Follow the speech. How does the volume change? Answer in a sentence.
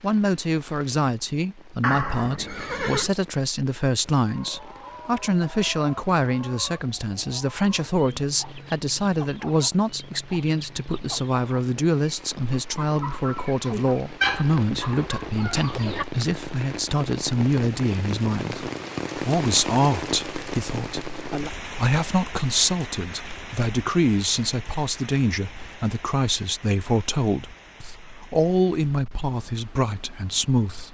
The loudness of the speech stays about the same.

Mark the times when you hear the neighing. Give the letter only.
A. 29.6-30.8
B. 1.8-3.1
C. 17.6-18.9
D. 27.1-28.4
B.